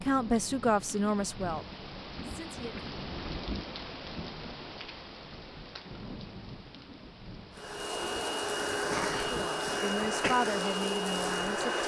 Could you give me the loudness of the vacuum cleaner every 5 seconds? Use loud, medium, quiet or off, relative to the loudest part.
off, loud, loud.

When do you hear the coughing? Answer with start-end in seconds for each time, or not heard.
8.7-10.3.